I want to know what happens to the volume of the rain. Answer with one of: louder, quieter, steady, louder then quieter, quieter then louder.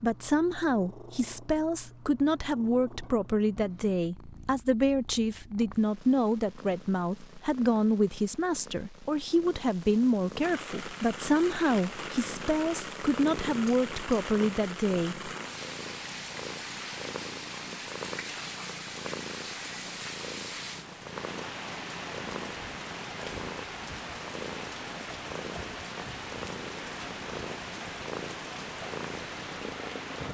steady.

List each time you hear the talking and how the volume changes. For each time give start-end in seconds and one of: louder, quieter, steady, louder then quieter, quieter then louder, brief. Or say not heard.
0.0-15.3 steady.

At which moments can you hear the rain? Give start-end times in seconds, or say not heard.
10.4-30.2.